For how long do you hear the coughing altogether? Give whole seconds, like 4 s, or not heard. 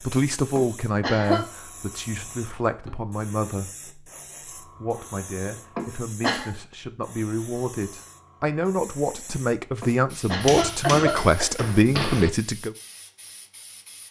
3 s.